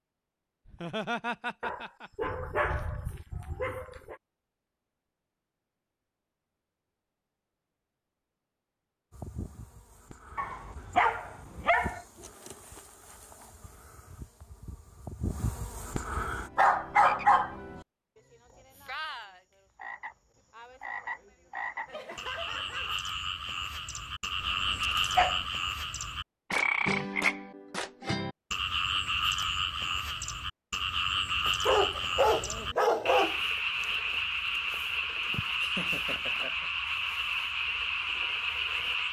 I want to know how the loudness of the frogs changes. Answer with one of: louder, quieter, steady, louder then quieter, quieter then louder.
louder.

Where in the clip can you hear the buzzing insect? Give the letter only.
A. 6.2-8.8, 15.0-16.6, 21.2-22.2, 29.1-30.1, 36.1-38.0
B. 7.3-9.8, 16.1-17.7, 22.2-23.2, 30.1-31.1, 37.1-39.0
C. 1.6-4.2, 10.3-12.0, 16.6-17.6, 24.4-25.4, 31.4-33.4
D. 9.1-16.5
D.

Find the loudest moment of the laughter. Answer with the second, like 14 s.
1 s.